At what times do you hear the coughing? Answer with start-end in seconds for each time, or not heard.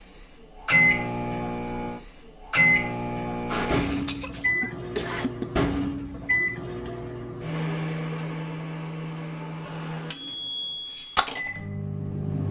3.5-5.5.